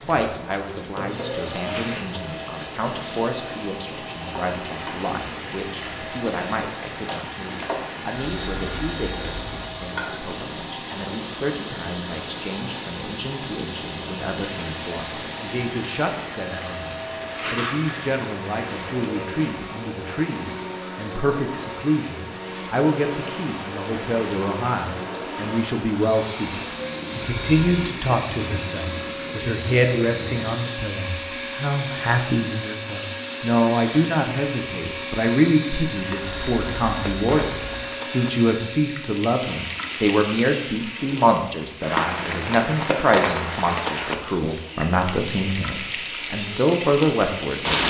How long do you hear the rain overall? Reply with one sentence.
You can hear the rain for 48 seconds altogether.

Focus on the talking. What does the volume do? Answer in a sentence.
The volume of the talking goes up.